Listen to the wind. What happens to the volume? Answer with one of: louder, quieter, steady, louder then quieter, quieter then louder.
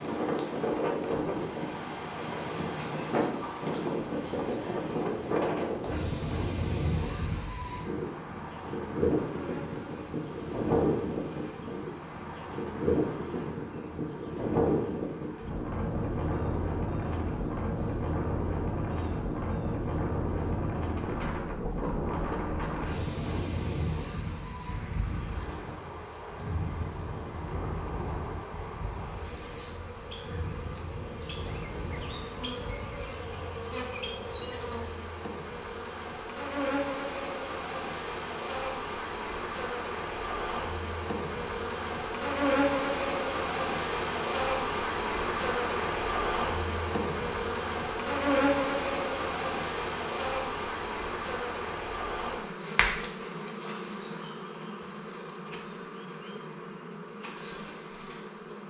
quieter.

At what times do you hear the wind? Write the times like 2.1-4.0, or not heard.
0.0-33.6.